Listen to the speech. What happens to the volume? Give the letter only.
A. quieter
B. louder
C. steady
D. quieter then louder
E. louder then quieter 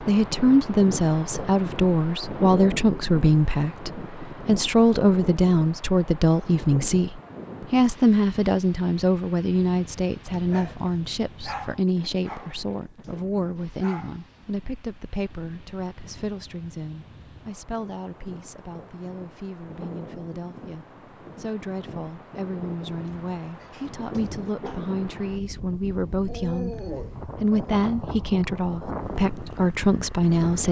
D.